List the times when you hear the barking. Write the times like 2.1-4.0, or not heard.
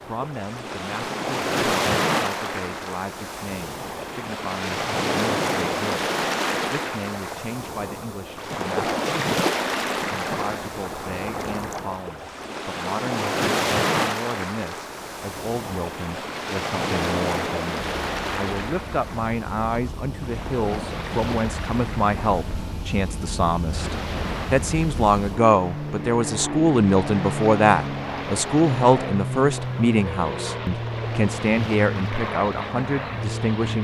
not heard.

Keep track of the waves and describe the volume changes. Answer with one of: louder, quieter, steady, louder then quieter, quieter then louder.
quieter.